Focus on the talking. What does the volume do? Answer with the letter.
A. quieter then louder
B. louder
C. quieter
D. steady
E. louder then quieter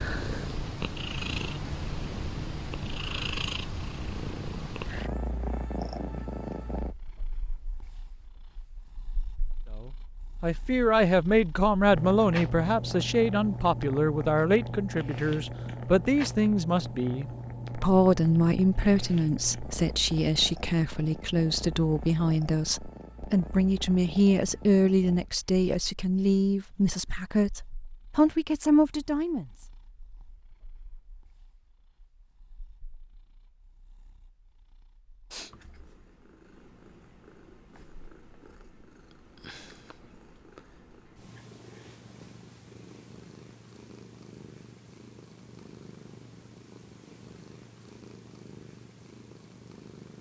D.